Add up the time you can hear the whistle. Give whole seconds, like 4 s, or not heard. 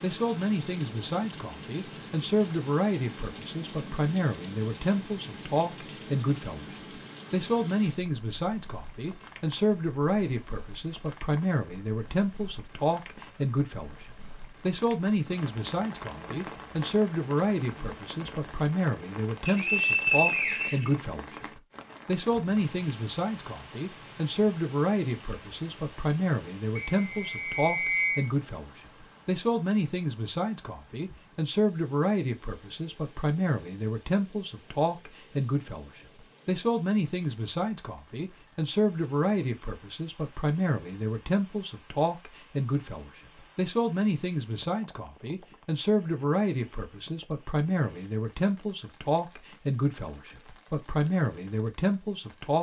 3 s.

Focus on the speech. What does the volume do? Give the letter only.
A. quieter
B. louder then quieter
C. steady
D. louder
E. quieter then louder
C.